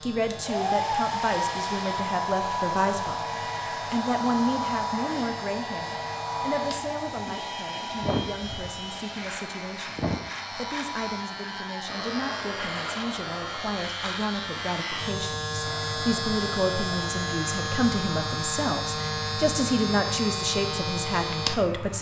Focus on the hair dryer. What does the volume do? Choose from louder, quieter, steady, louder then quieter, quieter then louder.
quieter.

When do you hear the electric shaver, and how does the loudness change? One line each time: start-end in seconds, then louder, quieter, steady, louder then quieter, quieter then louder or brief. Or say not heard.
0.0-21.9 louder.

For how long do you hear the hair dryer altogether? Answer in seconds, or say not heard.
22 s.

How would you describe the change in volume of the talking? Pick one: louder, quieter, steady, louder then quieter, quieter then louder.
quieter then louder.